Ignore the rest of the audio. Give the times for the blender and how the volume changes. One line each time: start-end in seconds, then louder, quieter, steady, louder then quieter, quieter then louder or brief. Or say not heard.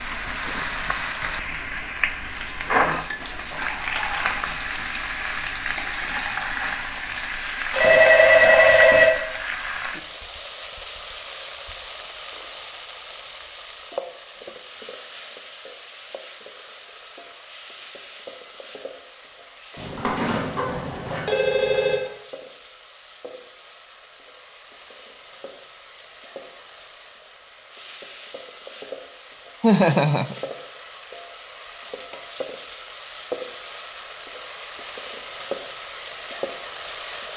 not heard.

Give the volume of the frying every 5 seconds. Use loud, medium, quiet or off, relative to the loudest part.
loud, loud, medium, quiet, quiet, quiet, medium, medium.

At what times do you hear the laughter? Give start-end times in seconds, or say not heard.
29.6-30.4.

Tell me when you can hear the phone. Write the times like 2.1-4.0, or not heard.
7.7-9.1, 19.8-22.0.